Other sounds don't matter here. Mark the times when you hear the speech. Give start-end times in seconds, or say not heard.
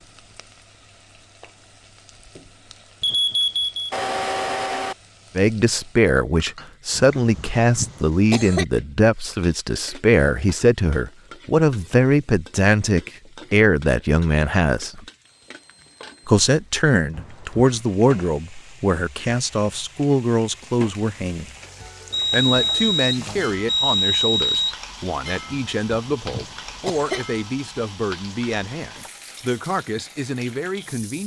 5.3-15.0, 16.2-21.6, 22.3-31.2.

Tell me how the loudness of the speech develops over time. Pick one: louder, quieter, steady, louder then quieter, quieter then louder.
quieter.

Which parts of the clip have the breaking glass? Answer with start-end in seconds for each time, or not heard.
not heard.